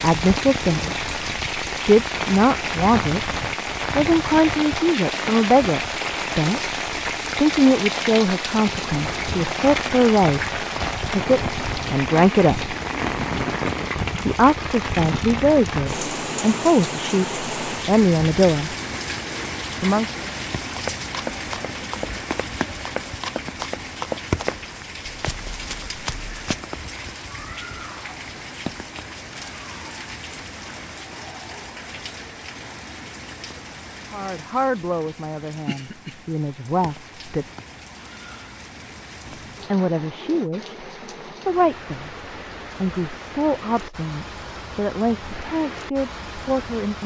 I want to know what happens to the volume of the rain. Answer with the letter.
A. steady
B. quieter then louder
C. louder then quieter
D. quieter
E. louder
D.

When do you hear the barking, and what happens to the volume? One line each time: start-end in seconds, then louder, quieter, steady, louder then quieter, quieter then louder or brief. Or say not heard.
not heard.